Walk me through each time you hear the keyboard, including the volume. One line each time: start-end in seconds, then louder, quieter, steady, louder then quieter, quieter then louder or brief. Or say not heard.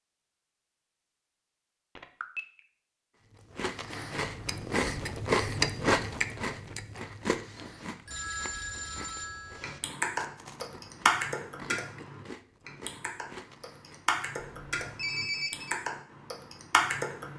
9.6-17.3 quieter then louder.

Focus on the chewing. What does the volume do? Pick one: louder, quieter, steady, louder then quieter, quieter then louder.
quieter.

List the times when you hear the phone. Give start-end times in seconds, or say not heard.
1.9-2.4, 8.1-9.8, 14.3-15.8.